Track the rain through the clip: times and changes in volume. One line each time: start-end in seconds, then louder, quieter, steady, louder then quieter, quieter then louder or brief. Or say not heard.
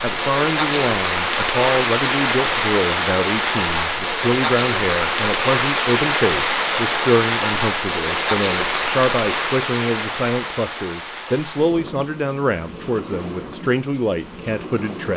0.0-15.1 quieter.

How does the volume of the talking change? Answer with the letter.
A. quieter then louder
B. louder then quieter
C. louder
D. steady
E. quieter
D.